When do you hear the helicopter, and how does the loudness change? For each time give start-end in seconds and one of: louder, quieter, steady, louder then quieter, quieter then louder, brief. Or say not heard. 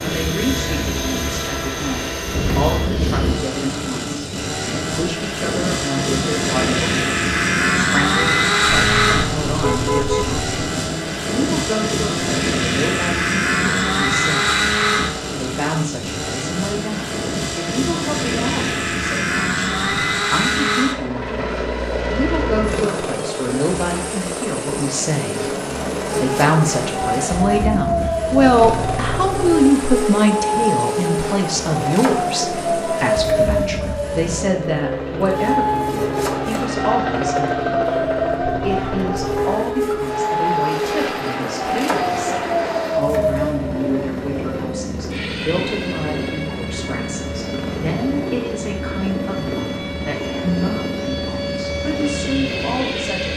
0.0-53.3 quieter.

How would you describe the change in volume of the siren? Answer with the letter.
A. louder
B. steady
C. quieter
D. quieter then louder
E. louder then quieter
C.